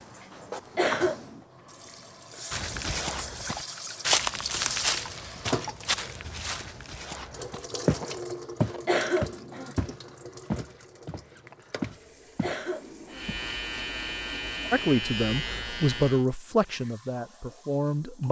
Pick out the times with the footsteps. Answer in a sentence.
You can hear the footsteps from 2.5 to 12.6 s and from 13.2 to 13.9 s.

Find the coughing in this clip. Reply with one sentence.
You can hear the coughing from 0.8 to 1.4 s, from 8.8 to 9.8 s and from 12.4 to 13.3 s.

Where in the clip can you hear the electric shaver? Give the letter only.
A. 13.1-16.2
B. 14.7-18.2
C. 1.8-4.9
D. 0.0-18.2
A.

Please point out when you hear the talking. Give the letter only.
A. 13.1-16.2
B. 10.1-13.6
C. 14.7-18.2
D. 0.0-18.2
C.